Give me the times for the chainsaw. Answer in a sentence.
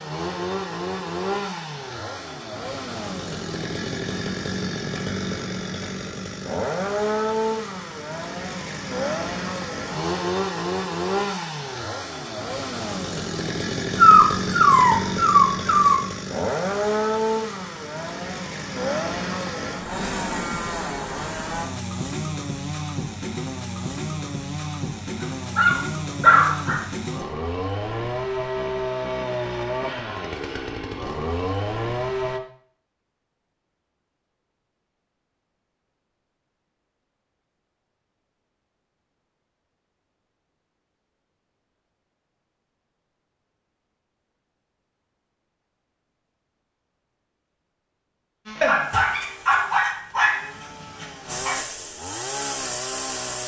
The chainsaw can be heard from 0.0 to 32.4 s and from 48.5 to 53.4 s.